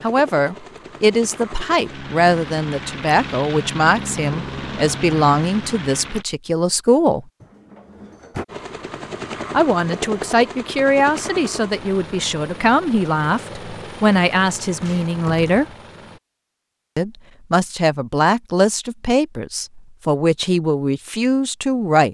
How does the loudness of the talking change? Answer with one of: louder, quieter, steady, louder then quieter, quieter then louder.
steady.